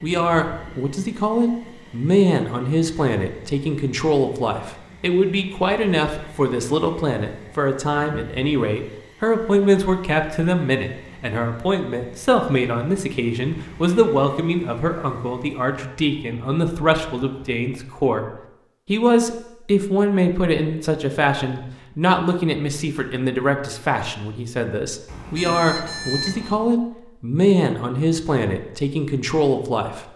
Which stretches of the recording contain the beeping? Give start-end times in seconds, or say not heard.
25.1-26.6.